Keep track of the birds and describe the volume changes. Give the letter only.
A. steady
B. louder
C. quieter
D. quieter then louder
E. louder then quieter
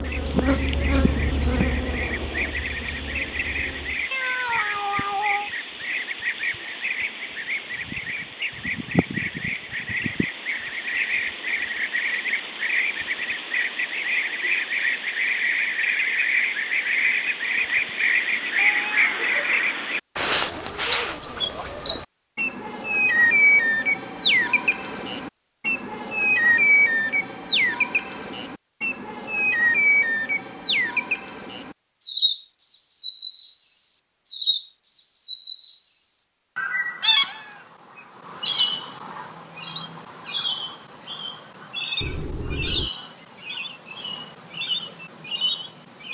E.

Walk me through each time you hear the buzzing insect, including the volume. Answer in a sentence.
The buzzing insect can be heard from 0.0 to 4.0 s, getting quieter.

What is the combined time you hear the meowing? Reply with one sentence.
The meowing can be heard for 3 seconds in total.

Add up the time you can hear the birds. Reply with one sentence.
You can hear the birds for 46 seconds altogether.